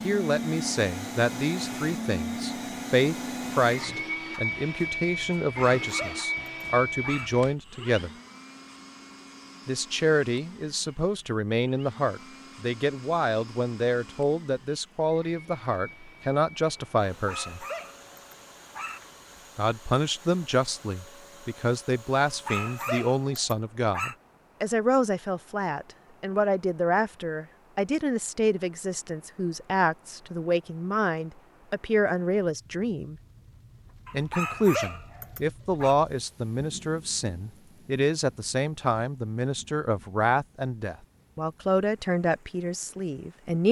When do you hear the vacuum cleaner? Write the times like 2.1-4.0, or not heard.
0.0-23.2.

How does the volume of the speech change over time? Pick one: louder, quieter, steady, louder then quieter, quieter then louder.
steady.